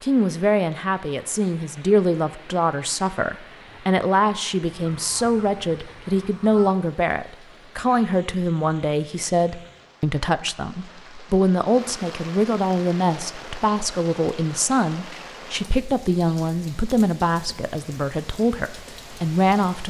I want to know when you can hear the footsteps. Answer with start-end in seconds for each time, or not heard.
not heard.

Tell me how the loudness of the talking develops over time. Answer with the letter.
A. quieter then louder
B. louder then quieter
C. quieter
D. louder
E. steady
E.